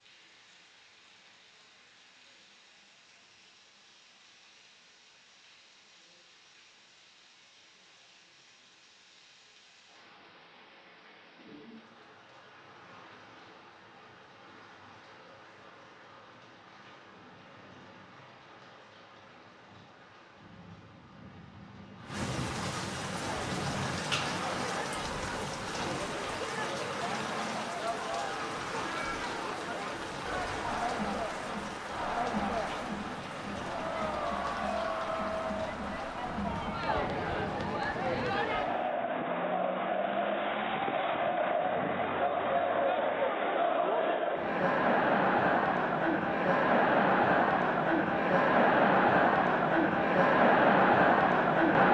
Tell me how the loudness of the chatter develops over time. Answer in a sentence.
The loudness of the chatter goes up.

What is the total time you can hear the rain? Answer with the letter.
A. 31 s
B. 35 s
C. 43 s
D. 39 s
D.